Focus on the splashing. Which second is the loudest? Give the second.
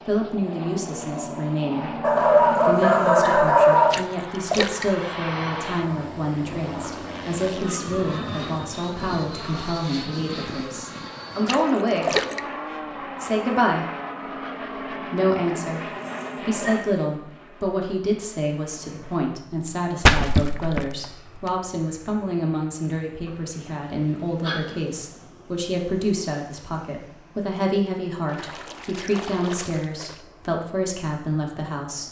20 s.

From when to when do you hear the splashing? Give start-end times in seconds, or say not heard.
3.9-4.8, 11.4-12.4, 20.0-21.5, 28.2-30.2.